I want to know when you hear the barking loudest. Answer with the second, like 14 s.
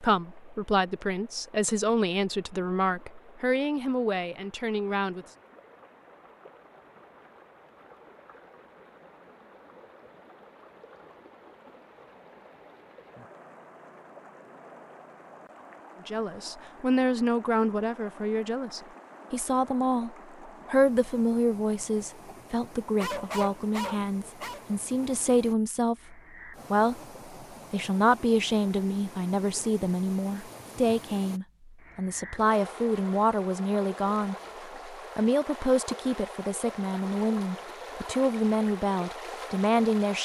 23 s.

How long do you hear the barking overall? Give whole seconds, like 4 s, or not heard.
2 s.